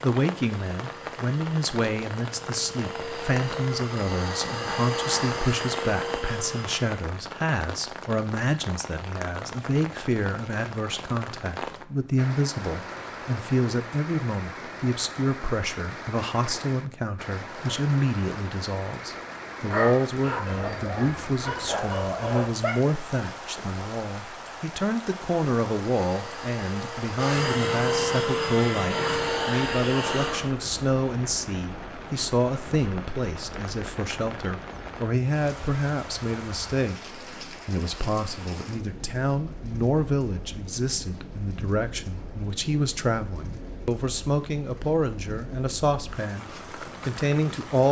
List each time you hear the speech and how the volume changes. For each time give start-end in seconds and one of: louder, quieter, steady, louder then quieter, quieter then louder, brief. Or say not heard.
0.0-47.8 steady.